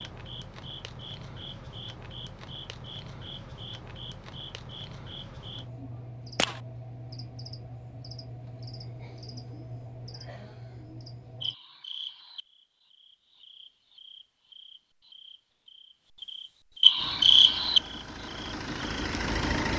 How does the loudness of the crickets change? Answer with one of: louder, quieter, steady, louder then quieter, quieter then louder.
louder.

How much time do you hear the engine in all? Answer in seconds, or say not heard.
3 s.